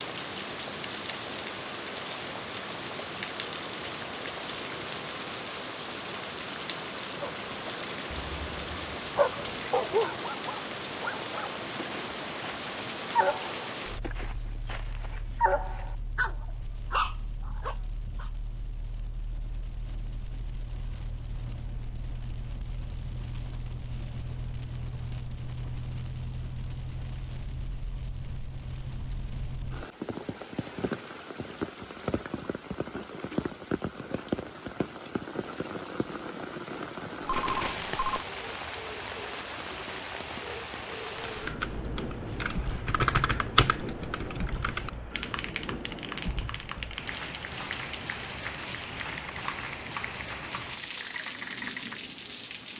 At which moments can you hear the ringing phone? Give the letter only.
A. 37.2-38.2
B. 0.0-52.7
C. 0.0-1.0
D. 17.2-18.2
A.